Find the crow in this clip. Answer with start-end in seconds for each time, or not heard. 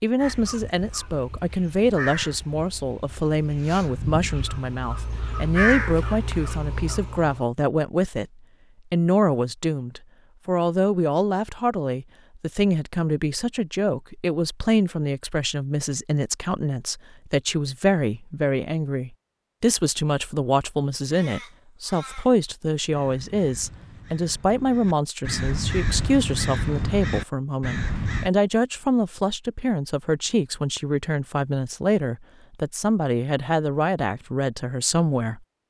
0.1-7.4, 21.1-28.3.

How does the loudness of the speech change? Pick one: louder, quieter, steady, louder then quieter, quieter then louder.
steady.